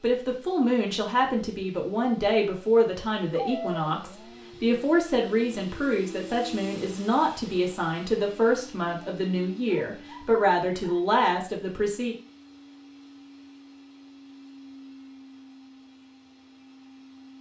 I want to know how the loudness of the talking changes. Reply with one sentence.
The volume of the talking stays about the same.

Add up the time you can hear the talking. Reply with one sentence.
The talking can be heard for 12 seconds in total.